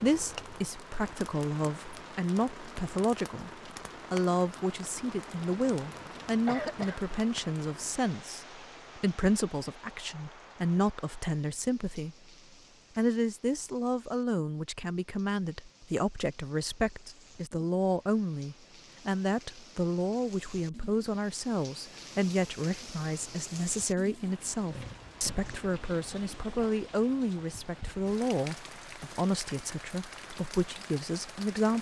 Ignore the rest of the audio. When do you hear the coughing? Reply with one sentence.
The coughing can be heard from 5.5 to 7.2 s.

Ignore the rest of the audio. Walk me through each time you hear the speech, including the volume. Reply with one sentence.
The speech can be heard from 0.0 to 12.2 s, at a steady volume; and from 12.9 to 31.7 s, at a steady volume.